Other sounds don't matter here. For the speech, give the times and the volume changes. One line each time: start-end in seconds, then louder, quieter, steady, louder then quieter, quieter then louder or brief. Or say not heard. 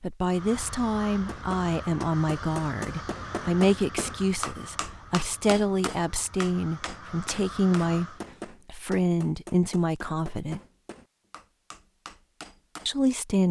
0.0-10.6 steady
12.8-13.4 brief.